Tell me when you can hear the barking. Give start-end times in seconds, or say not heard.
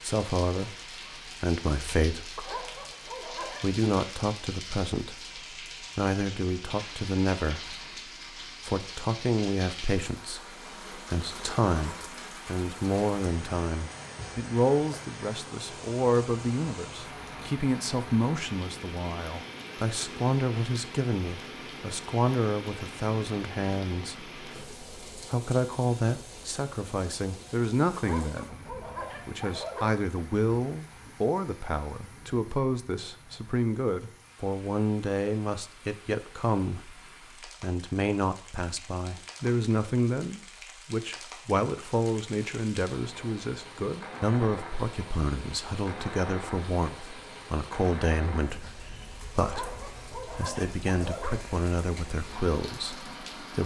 2.4-3.9, 27.9-29.9, 49.4-51.5.